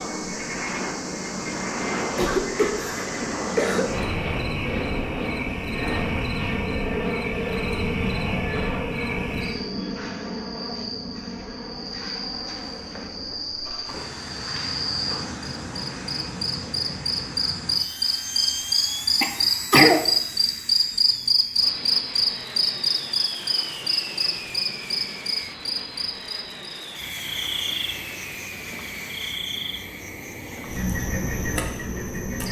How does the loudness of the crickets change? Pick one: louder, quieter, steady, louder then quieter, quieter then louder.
louder then quieter.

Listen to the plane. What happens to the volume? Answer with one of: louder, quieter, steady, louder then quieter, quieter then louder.
quieter.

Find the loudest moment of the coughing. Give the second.
20 s.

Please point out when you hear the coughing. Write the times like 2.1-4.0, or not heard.
2.1-3.9, 19.2-20.1.